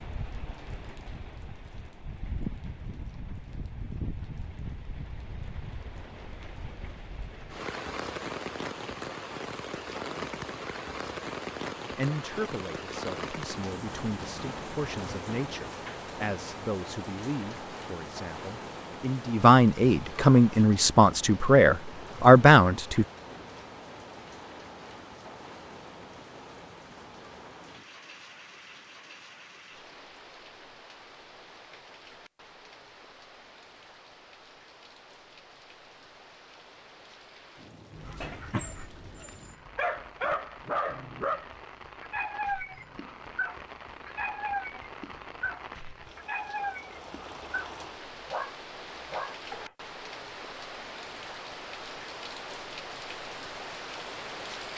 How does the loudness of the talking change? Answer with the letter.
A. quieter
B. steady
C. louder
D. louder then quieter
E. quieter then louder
C.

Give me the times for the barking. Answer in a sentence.
You can hear the barking from 38.0 to 49.8 s.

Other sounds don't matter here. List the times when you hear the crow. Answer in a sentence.
You can't hear the crow here.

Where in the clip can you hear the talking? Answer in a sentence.
You can hear the talking from 11.9 to 23.1 s.